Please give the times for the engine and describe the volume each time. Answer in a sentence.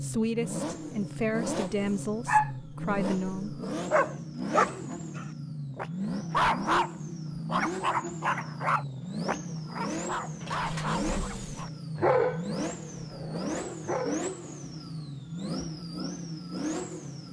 You can hear the engine from 0.0 to 17.2 s, at a steady volume.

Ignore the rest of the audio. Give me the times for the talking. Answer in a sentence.
The talking can be heard from 0.0 to 3.5 s.